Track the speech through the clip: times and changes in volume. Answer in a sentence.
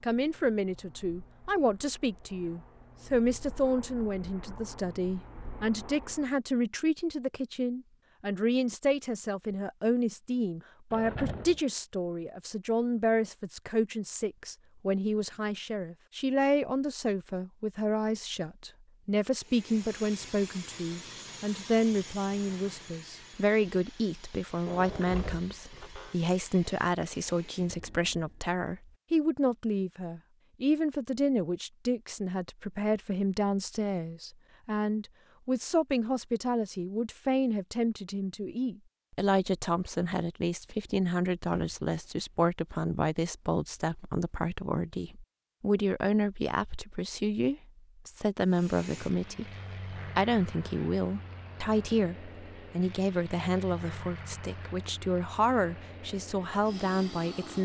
The speech can be heard from 0.0 to 57.5 s, at a steady volume.